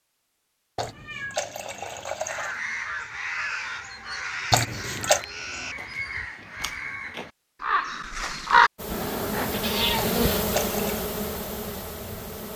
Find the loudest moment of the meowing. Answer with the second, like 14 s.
10 s.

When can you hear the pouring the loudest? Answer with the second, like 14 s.
5 s.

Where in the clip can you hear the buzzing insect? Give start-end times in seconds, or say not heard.
8.8-12.5.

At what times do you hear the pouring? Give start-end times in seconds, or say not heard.
0.8-2.5, 4.5-5.2, 9.9-11.1.